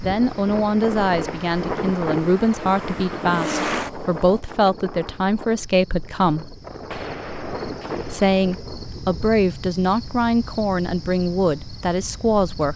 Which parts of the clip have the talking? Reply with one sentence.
The talking can be heard from 0.0 to 6.5 s and from 8.0 to 12.7 s.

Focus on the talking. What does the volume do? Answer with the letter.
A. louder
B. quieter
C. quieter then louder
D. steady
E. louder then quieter
D.